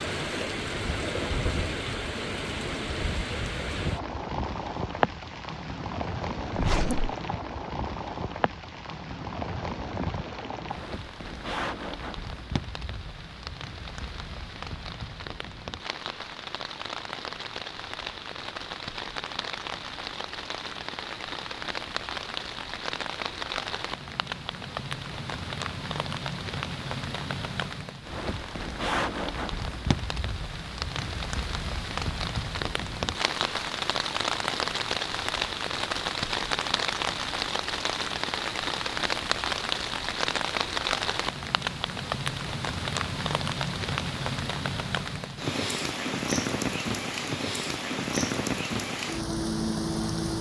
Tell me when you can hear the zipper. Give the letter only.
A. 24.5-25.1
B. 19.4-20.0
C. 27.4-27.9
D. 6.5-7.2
D.